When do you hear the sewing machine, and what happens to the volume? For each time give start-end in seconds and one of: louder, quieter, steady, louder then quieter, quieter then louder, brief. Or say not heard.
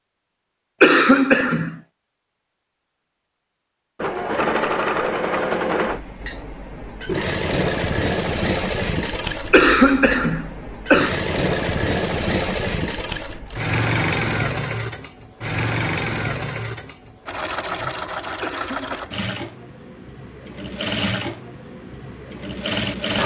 4.0-23.2 quieter.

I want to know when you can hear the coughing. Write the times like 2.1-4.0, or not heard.
0.8-1.8, 9.5-11.2, 18.4-19.1.